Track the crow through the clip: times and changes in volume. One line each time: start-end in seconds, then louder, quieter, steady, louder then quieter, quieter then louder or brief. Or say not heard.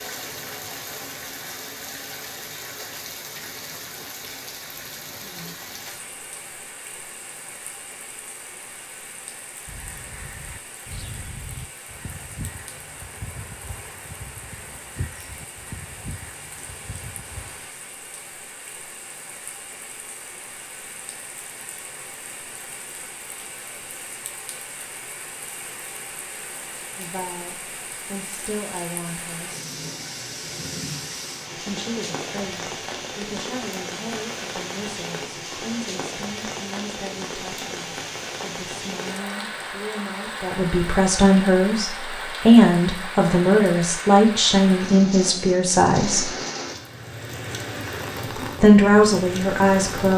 9.7-17.6 steady.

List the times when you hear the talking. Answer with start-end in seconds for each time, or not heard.
26.9-29.5, 31.6-46.3, 48.6-50.1.